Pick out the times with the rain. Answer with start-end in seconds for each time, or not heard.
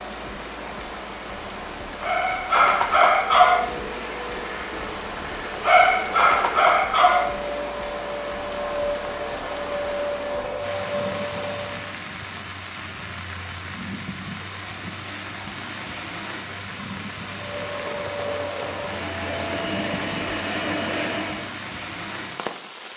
0.0-22.9.